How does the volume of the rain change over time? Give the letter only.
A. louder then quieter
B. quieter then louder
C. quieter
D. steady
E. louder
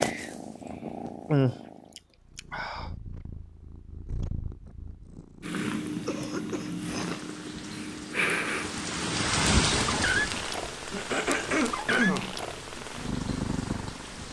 A.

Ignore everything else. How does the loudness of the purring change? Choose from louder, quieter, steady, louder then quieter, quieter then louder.
louder.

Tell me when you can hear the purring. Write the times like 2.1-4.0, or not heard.
0.0-14.2.